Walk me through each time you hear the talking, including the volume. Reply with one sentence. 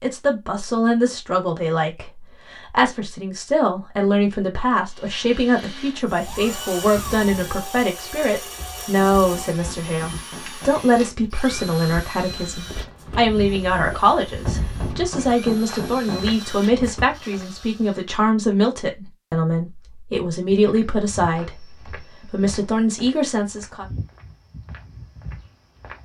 You can hear the talking from 0.0 to 23.9 s, at a steady volume.